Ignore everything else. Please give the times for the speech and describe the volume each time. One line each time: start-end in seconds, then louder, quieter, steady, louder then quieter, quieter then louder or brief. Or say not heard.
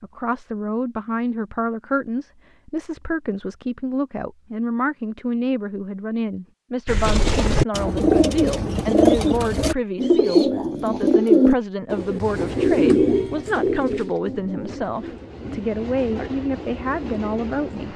0.0-17.9 steady.